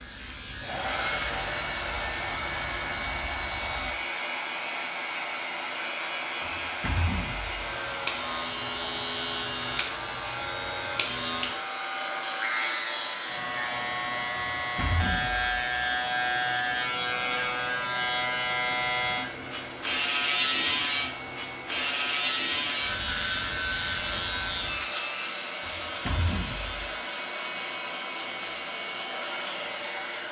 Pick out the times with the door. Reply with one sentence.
You can hear the door from 6.4 to 7.7 s, from 14.6 to 15.4 s and from 25.6 to 26.8 s.